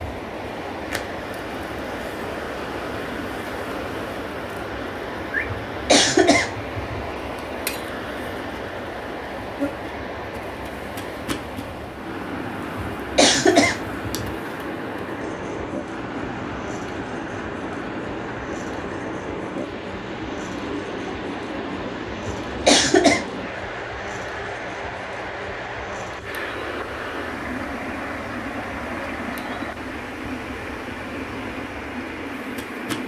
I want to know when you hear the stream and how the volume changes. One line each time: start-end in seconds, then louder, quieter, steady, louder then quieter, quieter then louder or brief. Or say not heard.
0.0-33.0 steady.